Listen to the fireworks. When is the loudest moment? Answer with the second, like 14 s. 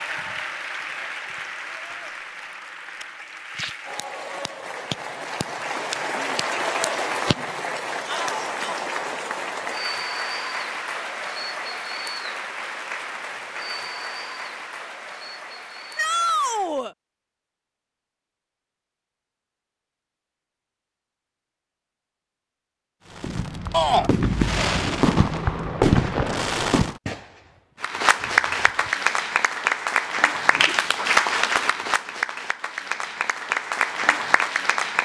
26 s.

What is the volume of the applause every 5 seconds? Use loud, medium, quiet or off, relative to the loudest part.
medium, medium, medium, quiet, off, loud, loud.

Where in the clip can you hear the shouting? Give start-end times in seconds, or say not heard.
8.1-8.8, 15.9-16.9, 23.7-24.1.